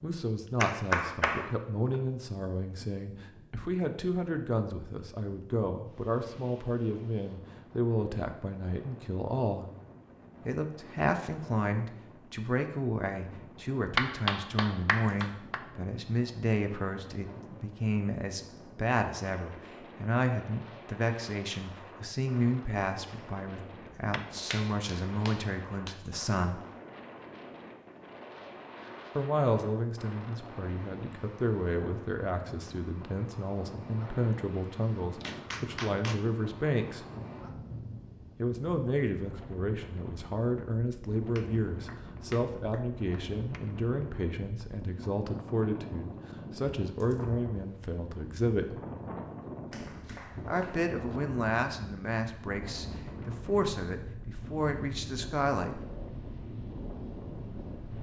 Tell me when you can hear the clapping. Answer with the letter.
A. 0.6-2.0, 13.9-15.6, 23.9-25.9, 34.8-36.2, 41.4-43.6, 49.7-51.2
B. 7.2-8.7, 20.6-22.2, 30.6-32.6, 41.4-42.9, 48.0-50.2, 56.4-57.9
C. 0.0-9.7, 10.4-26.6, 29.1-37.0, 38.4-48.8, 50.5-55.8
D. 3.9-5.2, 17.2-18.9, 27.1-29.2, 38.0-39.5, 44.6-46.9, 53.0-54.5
A.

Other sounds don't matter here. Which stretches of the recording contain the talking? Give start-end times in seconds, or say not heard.
0.0-9.7, 10.4-26.6, 29.1-37.0, 38.4-48.8, 50.5-55.8.